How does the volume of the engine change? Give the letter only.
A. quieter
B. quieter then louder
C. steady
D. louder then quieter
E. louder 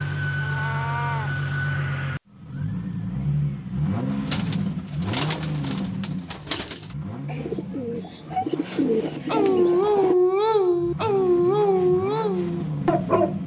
B.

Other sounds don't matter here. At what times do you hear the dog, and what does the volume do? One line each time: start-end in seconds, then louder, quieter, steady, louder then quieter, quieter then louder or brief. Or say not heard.
9.3-13.4 quieter.